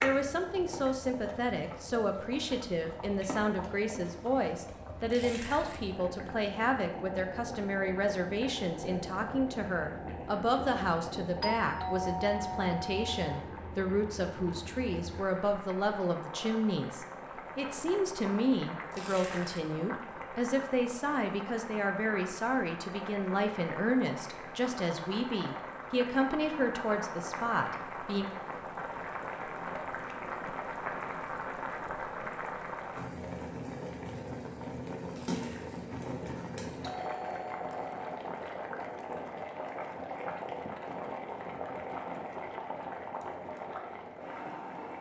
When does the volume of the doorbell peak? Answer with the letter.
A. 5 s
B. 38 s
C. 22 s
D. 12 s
D.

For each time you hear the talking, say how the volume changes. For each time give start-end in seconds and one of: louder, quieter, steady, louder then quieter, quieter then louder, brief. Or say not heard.
0.0-28.3 steady.